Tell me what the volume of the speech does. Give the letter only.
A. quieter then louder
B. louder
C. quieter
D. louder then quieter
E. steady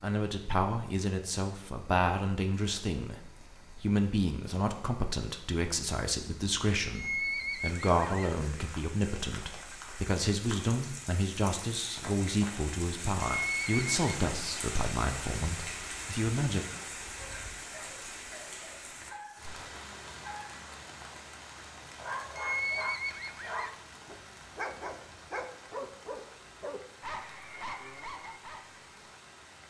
E.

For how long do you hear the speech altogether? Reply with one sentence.
The speech can be heard for 17 seconds in total.